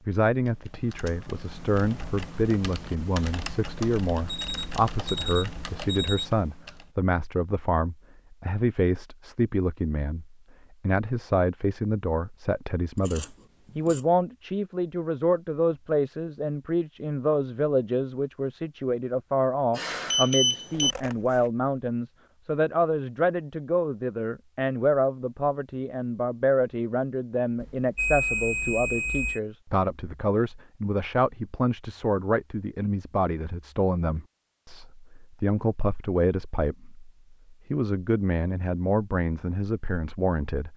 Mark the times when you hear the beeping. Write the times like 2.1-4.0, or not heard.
4.2-6.3, 19.7-20.9, 27.6-29.4.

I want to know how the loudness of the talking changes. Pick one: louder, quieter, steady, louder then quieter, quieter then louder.
steady.